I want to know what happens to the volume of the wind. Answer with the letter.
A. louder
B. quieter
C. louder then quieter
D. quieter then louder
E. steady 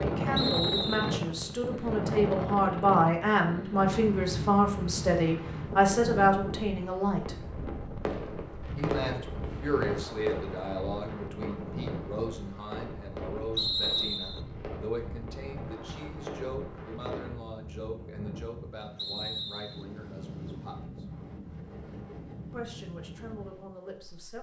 B.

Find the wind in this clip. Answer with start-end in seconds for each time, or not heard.
0.0-24.3.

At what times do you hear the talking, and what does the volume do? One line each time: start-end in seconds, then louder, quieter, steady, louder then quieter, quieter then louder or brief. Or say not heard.
0.0-7.3 louder
8.8-21.1 quieter
22.5-24.3 brief.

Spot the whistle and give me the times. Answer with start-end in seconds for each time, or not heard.
0.3-1.2, 13.6-14.4, 18.9-19.9.